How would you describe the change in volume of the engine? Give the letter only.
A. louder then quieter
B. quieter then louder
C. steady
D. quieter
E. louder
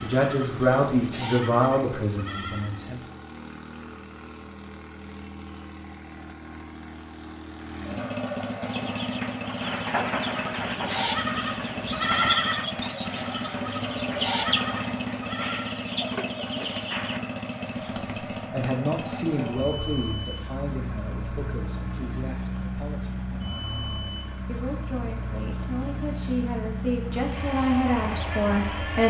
E.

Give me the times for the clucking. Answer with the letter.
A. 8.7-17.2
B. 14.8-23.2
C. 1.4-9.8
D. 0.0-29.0
A.